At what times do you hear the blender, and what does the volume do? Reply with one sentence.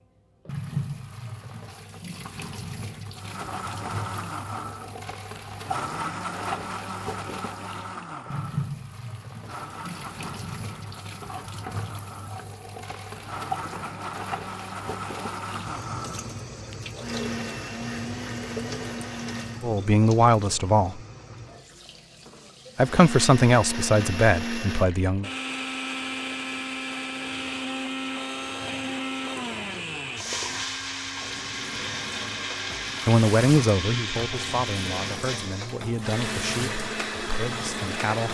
The blender can be heard from 3.1 to 19.7 s, getting quieter then louder; and from 22.8 to 38.2 s, at a steady volume.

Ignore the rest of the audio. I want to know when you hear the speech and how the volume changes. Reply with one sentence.
The speech can be heard briefly from 19.6 to 21.0 s; briefly from 22.8 to 25.3 s; and from 33.0 to 38.2 s, getting quieter.